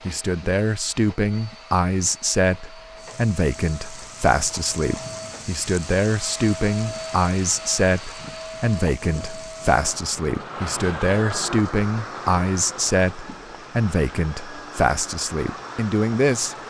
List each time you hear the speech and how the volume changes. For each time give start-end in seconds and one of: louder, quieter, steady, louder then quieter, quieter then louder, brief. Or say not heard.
0.1-16.6 steady.